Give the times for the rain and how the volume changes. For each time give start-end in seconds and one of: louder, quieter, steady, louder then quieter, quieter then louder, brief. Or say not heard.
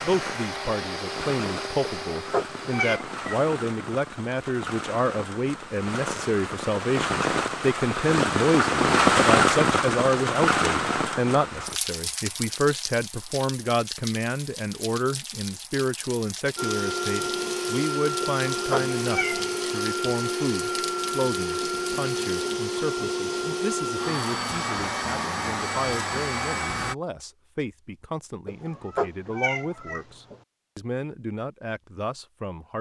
0.0-22.6 louder then quieter.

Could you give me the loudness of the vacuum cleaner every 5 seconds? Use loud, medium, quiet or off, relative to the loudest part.
medium, off, off, loud, loud, loud, off.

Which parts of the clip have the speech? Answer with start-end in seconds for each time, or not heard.
0.0-32.7.